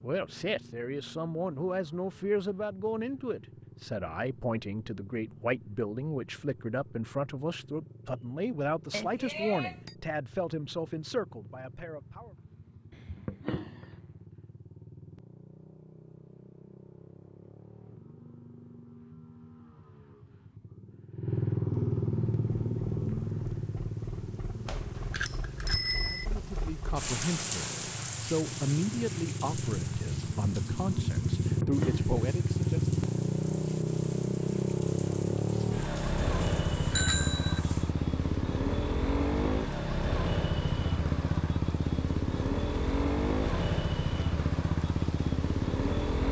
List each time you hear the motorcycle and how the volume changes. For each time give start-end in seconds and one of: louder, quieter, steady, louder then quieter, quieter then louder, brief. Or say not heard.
0.0-46.2 louder.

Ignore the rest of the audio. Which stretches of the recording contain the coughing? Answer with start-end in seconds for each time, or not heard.
12.9-14.0, 31.4-32.2.